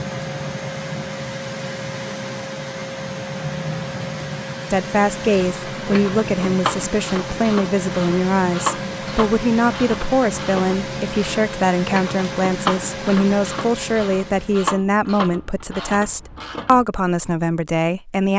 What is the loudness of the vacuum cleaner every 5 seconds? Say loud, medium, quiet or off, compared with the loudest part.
loud, loud, loud, off.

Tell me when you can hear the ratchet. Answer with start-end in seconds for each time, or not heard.
5.2-16.9.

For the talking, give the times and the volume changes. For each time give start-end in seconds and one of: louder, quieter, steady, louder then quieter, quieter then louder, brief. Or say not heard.
4.7-18.3 steady.